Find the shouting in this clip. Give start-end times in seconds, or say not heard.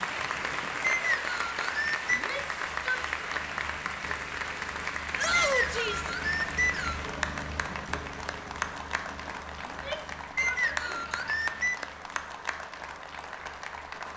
2.1-3.0, 5.2-6.1, 9.7-11.1.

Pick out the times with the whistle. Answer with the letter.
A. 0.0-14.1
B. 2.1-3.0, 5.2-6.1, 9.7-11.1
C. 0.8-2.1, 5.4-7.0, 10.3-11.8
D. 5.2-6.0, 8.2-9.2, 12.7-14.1
C.